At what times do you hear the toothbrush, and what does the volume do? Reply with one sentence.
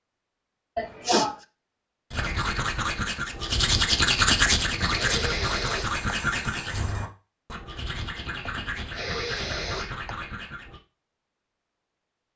The toothbrush can be heard from 2.1 to 10.8 s, getting quieter.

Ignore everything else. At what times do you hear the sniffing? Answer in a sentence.
You can hear the sniffing from 0.8 to 1.4 s, from 4.5 to 6.0 s and from 8.4 to 10.2 s.